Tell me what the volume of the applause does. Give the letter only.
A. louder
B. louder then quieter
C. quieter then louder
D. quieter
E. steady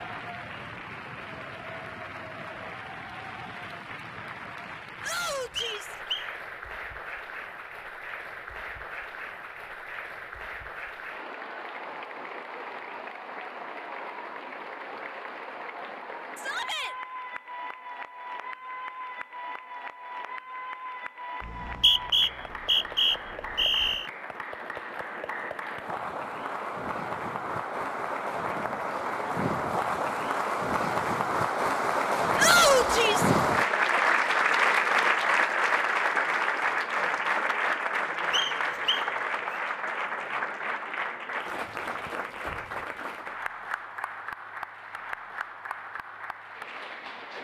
B.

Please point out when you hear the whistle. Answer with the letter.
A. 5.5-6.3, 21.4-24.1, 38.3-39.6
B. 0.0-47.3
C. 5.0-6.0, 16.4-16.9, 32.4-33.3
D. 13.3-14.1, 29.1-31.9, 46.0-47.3
A.